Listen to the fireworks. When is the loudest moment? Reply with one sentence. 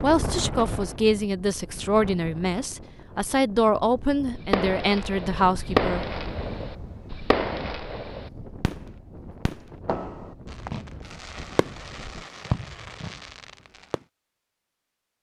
The loudest moment of the fireworks is at 6 seconds.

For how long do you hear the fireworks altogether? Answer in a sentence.
You can hear the fireworks for 9 seconds altogether.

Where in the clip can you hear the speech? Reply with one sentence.
The speech can be heard from 0.0 to 6.0 s.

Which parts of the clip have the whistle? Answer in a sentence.
You can't hear the whistle here.